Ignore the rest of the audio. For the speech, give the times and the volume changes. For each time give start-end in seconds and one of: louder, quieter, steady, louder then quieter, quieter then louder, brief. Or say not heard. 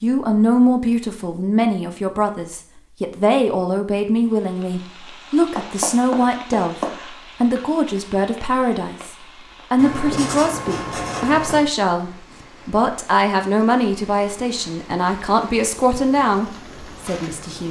0.0-17.6 steady.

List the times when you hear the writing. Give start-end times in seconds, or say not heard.
5.5-7.1, 9.8-11.7.